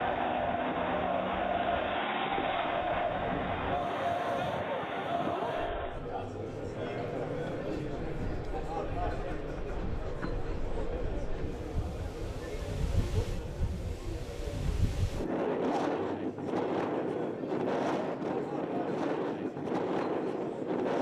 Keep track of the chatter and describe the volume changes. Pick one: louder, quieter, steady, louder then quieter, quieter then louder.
quieter.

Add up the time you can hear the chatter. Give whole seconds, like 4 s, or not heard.
21 s.